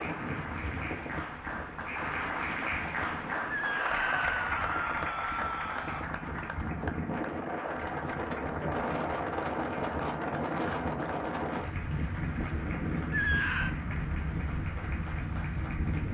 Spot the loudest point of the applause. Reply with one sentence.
The loudest moment of the applause is at 4 seconds.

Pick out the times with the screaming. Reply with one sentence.
The screaming can be heard from 3.5 to 6.0 s and from 13.1 to 13.8 s.